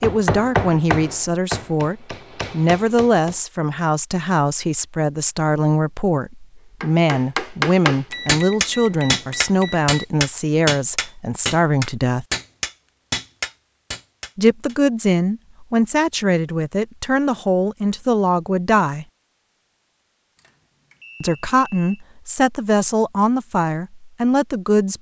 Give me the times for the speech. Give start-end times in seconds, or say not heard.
0.0-12.2, 14.3-19.1, 21.2-24.9.